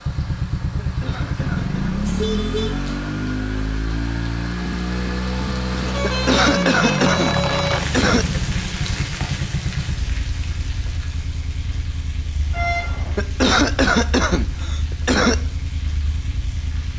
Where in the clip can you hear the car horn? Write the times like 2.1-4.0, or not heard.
2.0-2.8, 5.8-7.8, 12.5-13.2.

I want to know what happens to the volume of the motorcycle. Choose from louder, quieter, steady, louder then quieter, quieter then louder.
quieter.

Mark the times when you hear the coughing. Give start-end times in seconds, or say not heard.
0.8-2.0, 6.0-8.4, 13.2-15.3.